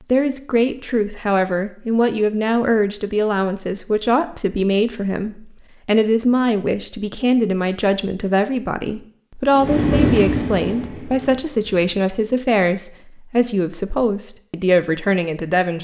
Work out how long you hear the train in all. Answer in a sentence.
You can hear the train for 2 seconds altogether.